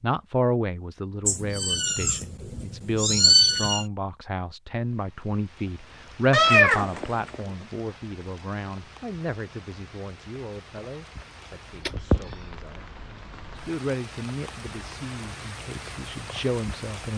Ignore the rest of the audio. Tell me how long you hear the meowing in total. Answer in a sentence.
You can hear the meowing for 4 seconds altogether.